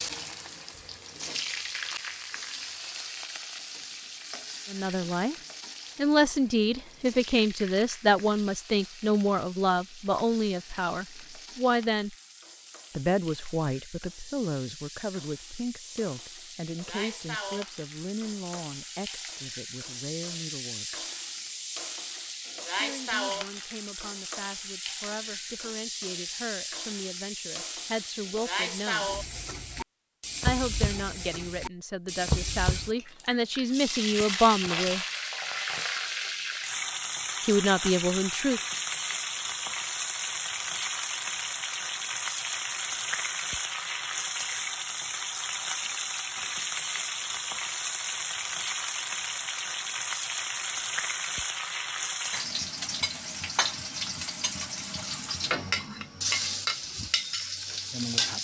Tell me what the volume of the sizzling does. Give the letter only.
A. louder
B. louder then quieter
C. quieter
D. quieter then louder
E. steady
A.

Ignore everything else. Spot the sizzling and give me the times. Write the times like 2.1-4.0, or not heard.
0.0-58.3.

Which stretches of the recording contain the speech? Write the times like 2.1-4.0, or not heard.
4.7-5.3, 6.0-12.2, 12.9-20.9, 22.8-29.1, 30.4-35.0, 37.5-38.6.